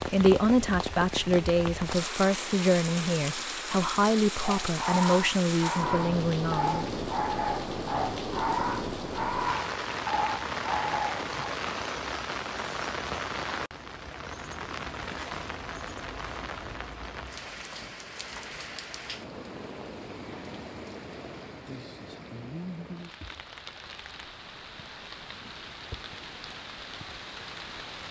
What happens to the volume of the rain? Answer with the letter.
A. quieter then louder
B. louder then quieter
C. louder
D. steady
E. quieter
E.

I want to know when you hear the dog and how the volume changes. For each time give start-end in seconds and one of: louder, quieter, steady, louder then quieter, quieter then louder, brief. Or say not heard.
4.4-11.3 steady.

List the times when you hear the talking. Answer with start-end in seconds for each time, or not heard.
0.1-7.0.